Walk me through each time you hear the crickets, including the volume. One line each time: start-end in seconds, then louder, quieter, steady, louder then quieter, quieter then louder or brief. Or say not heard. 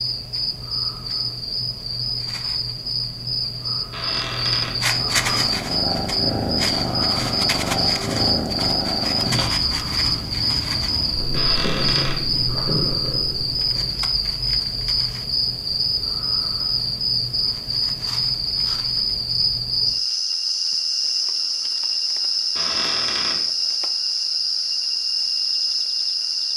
0.0-26.5 steady.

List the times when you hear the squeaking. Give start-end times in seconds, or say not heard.
3.9-4.8, 11.3-12.2, 22.6-23.4.